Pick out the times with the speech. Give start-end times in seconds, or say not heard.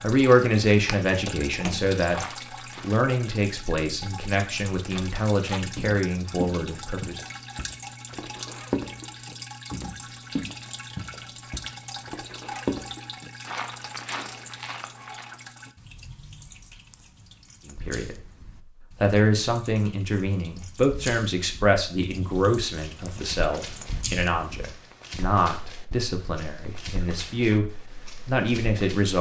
0.0-7.2, 17.6-18.3, 19.0-29.1.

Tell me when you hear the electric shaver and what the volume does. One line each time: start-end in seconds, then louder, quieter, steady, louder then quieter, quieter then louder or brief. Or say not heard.
not heard.